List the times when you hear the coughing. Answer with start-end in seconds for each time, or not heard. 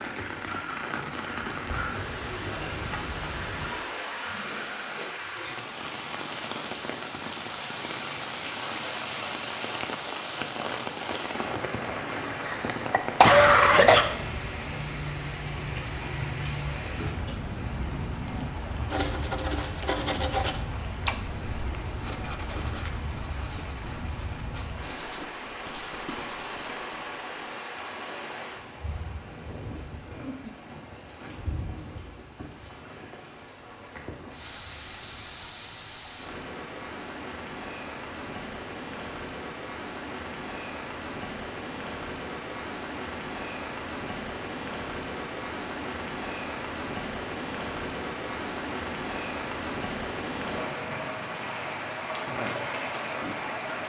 12.4-14.1.